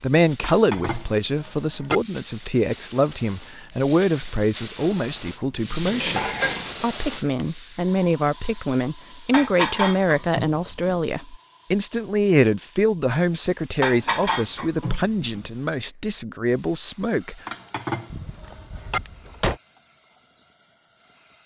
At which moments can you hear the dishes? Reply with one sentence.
The dishes can be heard from 0.4 to 2.0 s, from 5.8 to 6.8 s, from 9.3 to 11.0 s, from 13.8 to 15.4 s and from 17.4 to 19.0 s.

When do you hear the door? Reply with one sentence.
The door can be heard from 18.1 to 19.6 s.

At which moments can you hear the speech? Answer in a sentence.
The speech can be heard from 0.0 to 17.4 s.